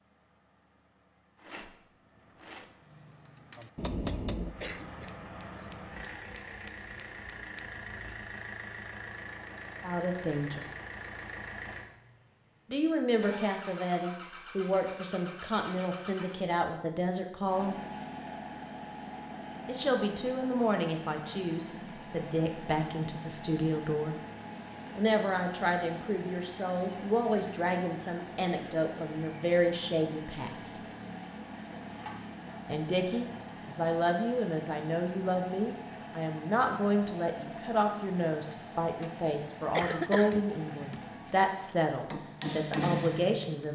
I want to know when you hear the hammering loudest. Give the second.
43 s.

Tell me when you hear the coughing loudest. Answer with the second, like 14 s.
40 s.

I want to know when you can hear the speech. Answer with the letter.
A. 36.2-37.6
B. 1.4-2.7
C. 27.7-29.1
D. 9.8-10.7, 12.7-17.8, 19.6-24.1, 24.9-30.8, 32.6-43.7
D.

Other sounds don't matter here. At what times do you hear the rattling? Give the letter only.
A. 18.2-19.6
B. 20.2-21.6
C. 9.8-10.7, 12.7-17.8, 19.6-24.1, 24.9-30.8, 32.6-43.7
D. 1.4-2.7
D.